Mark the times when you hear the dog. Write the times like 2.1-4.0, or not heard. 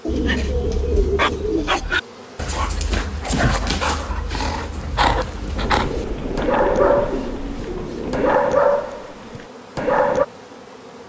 0.1-10.2.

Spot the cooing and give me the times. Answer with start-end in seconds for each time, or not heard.
0.1-1.8, 5.6-8.4.